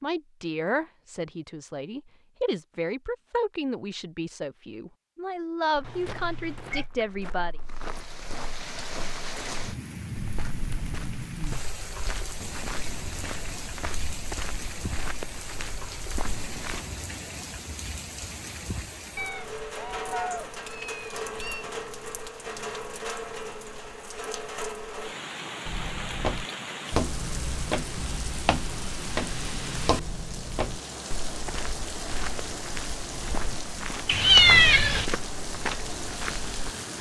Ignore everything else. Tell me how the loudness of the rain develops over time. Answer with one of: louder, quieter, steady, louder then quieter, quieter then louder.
steady.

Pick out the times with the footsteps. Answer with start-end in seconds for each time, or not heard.
5.8-16.9, 25.6-36.8.